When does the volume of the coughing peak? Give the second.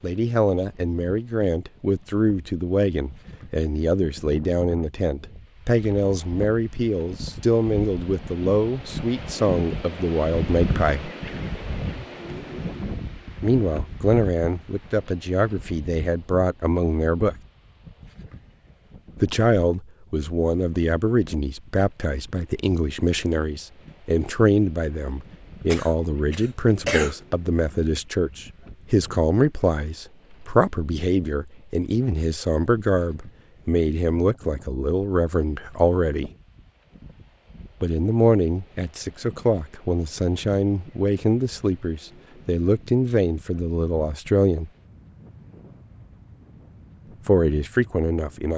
27 s.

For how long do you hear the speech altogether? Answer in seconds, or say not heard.
40 s.